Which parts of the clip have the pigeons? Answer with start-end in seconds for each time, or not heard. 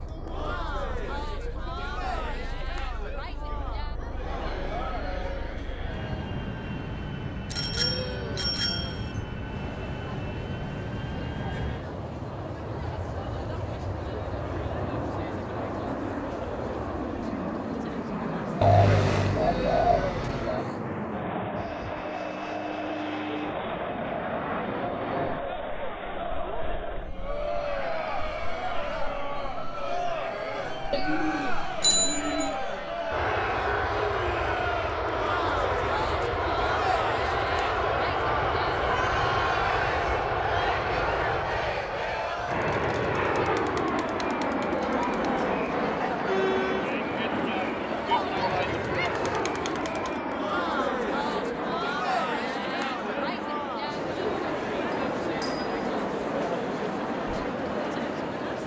18.6-20.6, 30.9-32.6.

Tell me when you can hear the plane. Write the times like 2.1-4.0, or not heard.
0.0-58.6.